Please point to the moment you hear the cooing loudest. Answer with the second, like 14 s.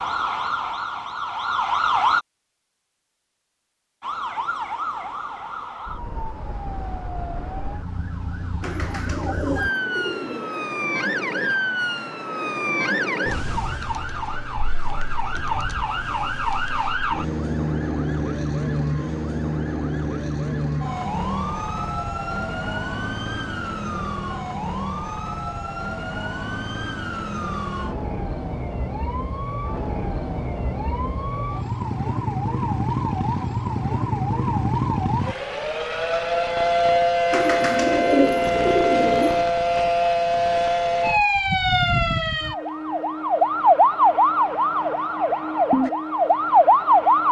38 s.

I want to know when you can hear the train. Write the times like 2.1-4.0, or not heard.
not heard.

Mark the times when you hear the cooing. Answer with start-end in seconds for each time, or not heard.
8.6-10.6, 37.3-39.5.